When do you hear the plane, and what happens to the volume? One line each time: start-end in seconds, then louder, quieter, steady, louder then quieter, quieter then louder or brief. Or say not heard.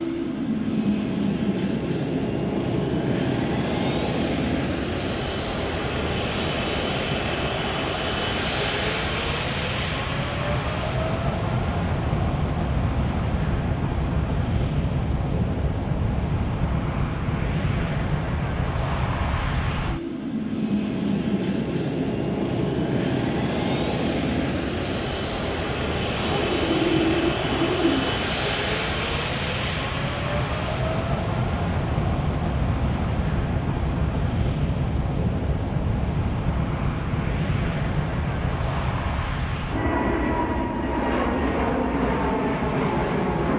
0.0-43.5 steady.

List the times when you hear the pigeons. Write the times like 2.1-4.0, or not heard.
26.1-28.1.